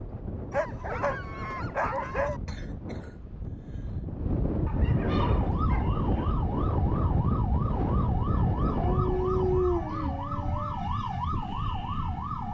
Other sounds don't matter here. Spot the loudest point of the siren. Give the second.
11 s.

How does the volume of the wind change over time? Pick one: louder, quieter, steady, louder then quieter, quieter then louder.
louder.